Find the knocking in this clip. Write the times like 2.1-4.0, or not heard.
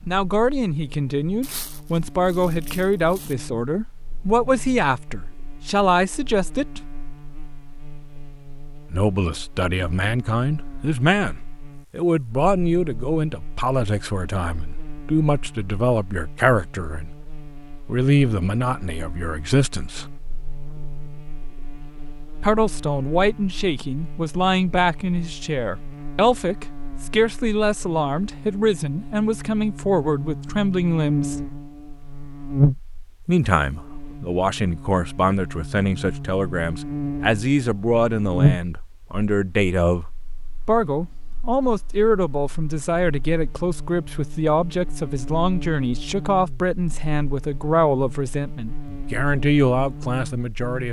not heard.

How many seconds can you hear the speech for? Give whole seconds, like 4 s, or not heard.
44 s.